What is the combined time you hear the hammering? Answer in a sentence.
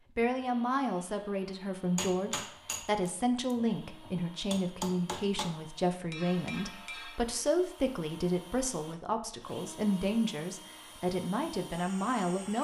You can hear the hammering for 5 seconds altogether.